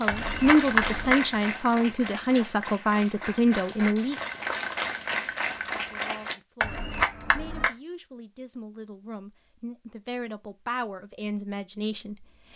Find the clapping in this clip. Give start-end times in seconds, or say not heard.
0.0-6.3.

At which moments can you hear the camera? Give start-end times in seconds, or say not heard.
0.1-1.4, 6.6-7.7.